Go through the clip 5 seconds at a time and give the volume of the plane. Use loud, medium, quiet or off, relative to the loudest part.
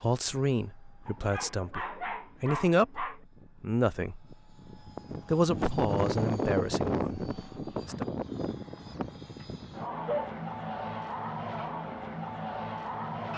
quiet, loud, loud.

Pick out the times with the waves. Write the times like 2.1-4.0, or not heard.
not heard.